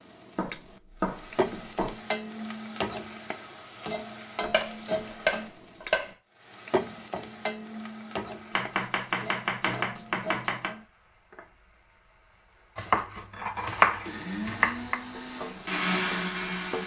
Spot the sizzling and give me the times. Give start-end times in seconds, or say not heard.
0.0-16.8.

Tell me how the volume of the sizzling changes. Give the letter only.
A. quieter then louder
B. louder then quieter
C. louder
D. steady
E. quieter
A.